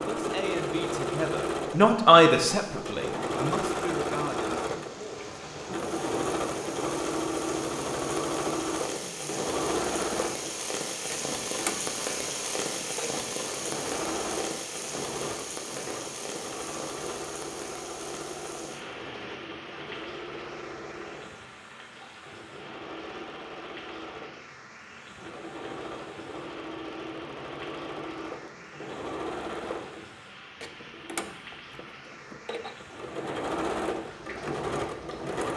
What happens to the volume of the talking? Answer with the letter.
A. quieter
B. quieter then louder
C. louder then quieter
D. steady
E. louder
C.